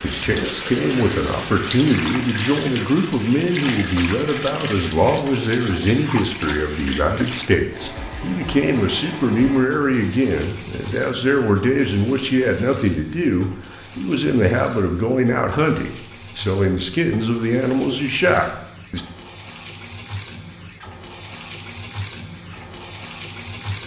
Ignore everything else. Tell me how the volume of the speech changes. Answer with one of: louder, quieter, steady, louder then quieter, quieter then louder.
steady.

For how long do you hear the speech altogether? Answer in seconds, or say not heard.
19 s.